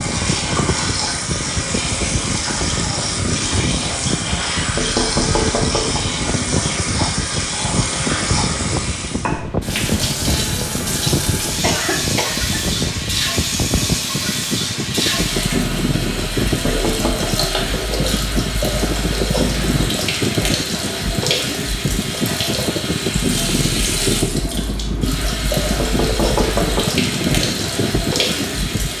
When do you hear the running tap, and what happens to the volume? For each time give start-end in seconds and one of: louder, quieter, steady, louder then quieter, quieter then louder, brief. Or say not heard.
0.0-28.9 steady.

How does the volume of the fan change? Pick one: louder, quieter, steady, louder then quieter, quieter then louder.
steady.